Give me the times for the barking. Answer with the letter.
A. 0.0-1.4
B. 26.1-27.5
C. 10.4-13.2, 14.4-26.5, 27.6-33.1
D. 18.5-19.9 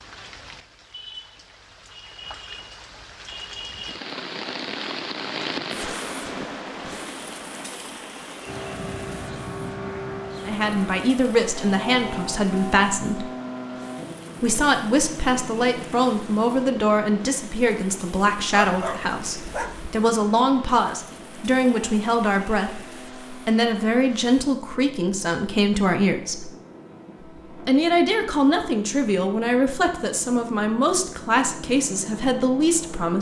D.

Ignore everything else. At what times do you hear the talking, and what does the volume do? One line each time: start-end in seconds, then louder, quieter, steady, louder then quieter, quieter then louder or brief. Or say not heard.
10.4-13.2 brief
14.4-26.5 steady
27.6-33.1 steady.